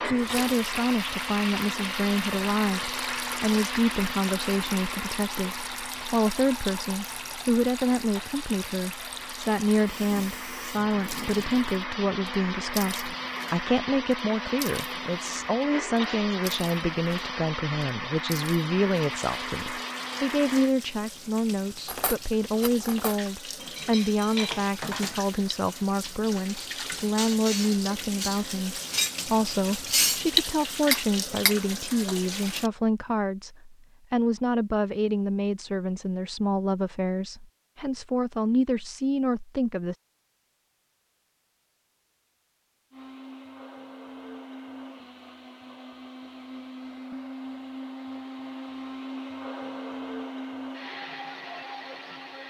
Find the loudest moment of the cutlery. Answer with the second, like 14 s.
30 s.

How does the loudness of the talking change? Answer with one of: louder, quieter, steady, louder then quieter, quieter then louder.
steady.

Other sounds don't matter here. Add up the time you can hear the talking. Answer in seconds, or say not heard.
40 s.